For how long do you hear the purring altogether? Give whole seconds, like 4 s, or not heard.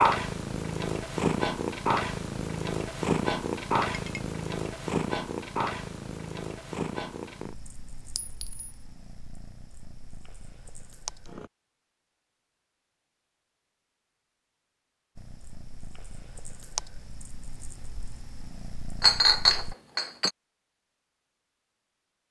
16 s.